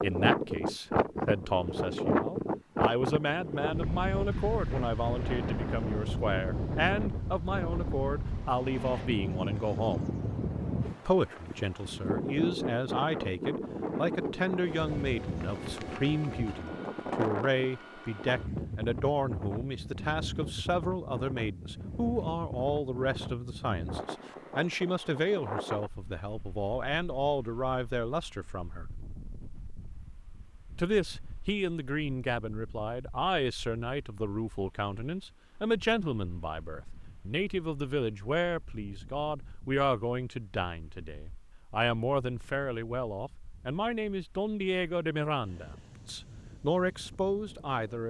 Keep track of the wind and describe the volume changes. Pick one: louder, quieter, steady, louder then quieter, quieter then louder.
quieter.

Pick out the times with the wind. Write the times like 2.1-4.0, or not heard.
0.0-48.0.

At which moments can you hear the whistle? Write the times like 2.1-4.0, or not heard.
not heard.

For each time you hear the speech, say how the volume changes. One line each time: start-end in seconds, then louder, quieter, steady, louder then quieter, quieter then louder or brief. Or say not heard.
0.0-10.1 steady
11.1-29.0 steady
30.8-48.0 steady.